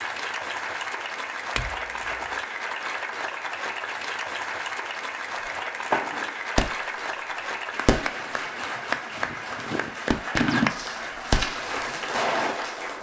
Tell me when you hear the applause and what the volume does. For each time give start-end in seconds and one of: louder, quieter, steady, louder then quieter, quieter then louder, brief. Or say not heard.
0.0-12.9 steady.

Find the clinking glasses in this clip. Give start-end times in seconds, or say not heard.
1.6-2.4.